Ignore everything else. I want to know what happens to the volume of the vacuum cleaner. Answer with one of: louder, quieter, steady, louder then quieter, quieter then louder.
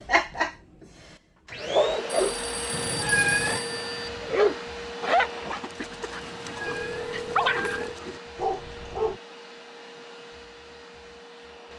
quieter.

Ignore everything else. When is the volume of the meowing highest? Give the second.
3 s.